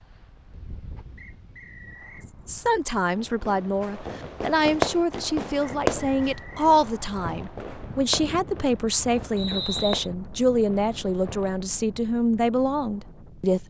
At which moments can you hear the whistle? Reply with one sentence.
You can hear the whistle from 1.1 to 2.3 s, from 5.6 to 6.5 s and from 9.3 to 10.1 s.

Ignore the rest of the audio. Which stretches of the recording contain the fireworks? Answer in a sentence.
You can hear the fireworks from 3.1 to 11.7 s.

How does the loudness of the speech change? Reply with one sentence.
The loudness of the speech stays about the same.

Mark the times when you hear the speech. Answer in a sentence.
You can hear the speech from 2.5 to 13.6 s.